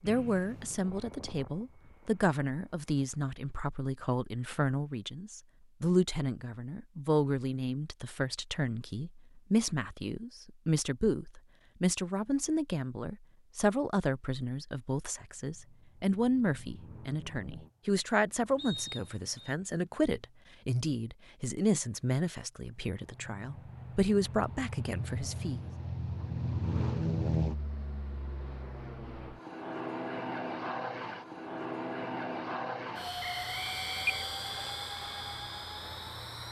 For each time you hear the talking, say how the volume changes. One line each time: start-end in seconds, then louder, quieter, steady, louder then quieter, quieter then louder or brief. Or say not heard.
0.0-25.6 steady.